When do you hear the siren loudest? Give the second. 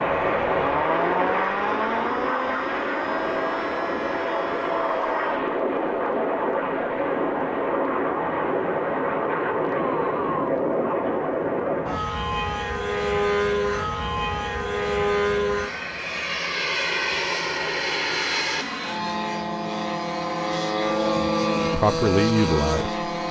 1 s.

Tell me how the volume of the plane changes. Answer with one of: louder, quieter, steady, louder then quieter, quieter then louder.
steady.